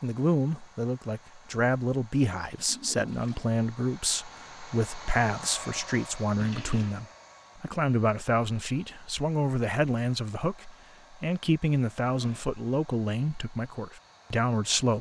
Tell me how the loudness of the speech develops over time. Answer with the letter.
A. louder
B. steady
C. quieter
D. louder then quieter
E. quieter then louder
B.